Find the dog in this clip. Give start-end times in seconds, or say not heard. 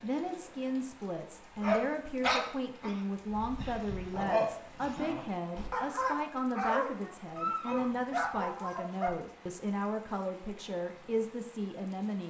1.6-9.1.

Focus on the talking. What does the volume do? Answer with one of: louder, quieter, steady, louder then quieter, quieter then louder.
steady.